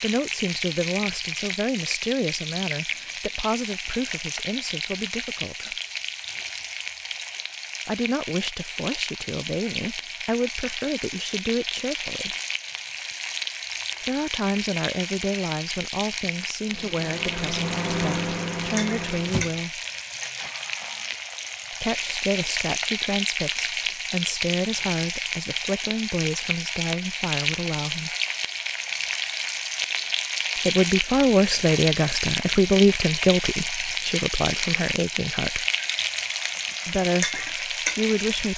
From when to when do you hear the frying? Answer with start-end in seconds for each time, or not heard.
0.0-38.5.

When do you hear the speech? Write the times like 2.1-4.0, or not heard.
0.0-5.8, 7.8-12.3, 14.1-19.8, 21.7-28.1, 30.6-35.6, 36.9-38.5.